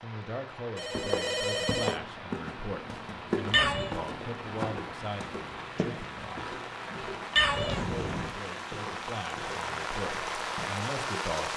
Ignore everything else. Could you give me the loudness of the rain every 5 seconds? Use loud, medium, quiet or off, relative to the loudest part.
medium, medium, loud.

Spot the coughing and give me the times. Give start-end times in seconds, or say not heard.
not heard.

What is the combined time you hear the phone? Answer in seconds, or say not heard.
2 s.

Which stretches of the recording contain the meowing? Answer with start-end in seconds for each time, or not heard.
3.0-4.0, 6.9-7.8.